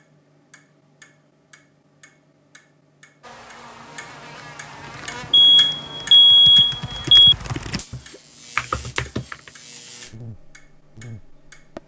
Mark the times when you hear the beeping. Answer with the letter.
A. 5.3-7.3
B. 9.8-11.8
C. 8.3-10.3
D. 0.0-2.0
A.